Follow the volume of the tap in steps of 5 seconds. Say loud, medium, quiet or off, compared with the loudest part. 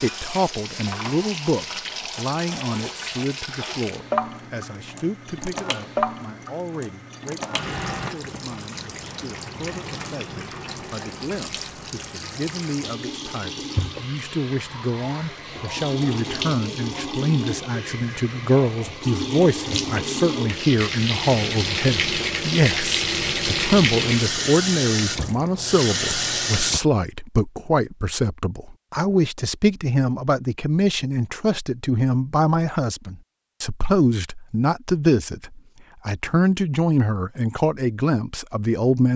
medium, medium, medium, medium, loud, loud, off, off.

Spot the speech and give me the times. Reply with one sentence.
You can hear the speech from 0.0 to 39.1 s.